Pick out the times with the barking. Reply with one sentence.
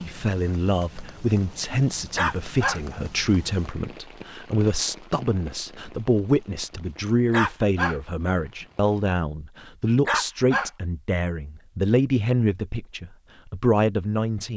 You can hear the barking from 2.1 to 2.8 s, from 7.3 to 8.0 s and from 10.1 to 10.7 s.